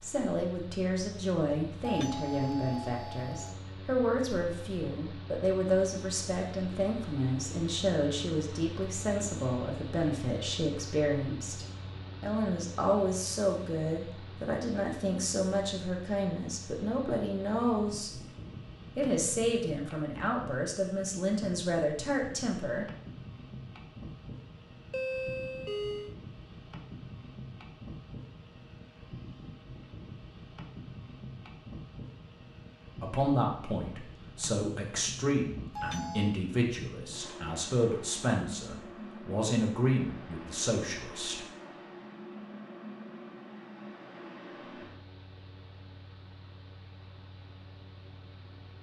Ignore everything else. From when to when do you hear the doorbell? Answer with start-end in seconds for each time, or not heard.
1.8-3.5, 24.9-26.1, 35.8-36.4.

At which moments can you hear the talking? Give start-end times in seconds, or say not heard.
0.0-18.2, 18.9-22.9, 33.0-41.5.